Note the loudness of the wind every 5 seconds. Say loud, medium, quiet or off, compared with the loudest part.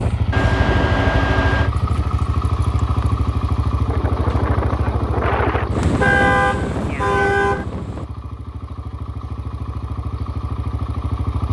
medium, loud, off.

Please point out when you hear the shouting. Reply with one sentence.
The shouting can't be heard in this clip.